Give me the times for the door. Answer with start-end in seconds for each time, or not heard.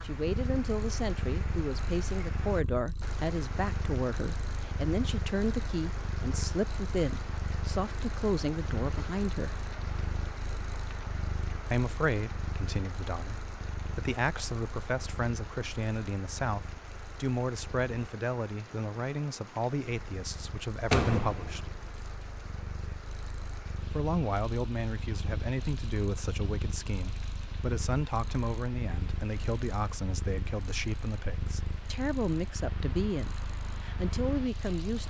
20.9-22.0.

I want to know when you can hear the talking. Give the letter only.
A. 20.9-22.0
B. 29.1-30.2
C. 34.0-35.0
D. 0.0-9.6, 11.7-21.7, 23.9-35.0
D.